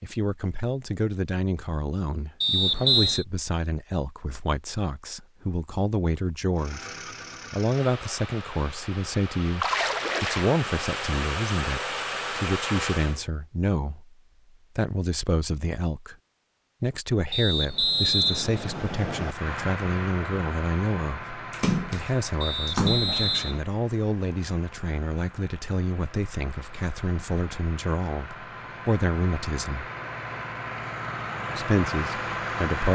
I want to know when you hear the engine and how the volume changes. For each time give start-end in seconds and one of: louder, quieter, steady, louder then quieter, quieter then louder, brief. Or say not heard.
6.5-13.2 louder
19.2-32.9 quieter then louder.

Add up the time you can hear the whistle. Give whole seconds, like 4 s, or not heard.
4 s.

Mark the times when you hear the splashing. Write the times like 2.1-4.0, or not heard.
9.6-10.6, 21.5-23.4.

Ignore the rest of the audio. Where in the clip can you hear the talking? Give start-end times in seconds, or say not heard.
0.0-6.9, 7.5-14.2, 14.8-16.1, 16.8-29.9, 31.5-32.9.